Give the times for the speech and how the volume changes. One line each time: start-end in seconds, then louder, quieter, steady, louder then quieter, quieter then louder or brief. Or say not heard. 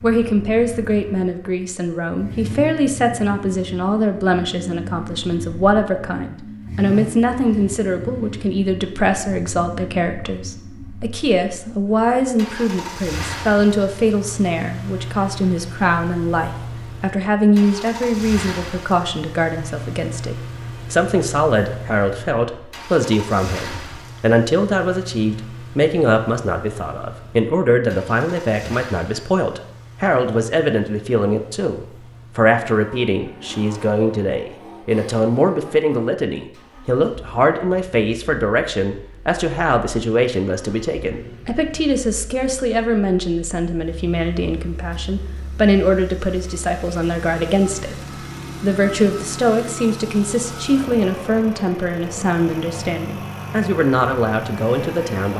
0.0-55.3 steady.